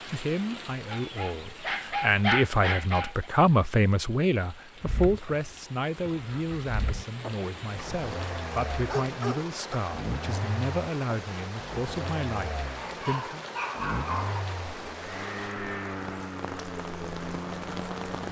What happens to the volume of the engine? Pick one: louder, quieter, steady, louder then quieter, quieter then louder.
louder.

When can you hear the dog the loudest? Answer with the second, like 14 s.
2 s.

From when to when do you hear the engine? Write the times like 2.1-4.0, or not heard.
4.8-18.2.